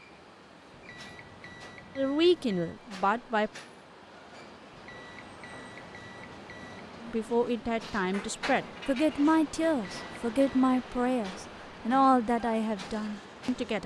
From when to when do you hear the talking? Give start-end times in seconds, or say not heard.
1.9-3.5, 7.0-13.8.